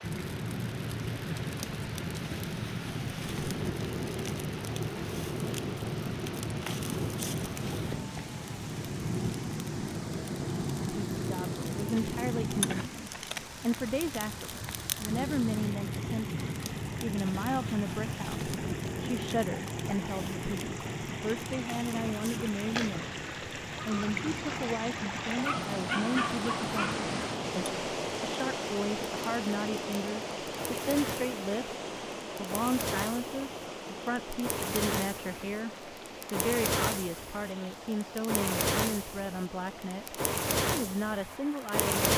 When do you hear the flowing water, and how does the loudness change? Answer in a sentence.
The flowing water can be heard from 0.0 to 41.9 s, getting louder then quieter.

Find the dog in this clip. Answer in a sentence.
The dog can be heard from 25.4 to 26.9 s.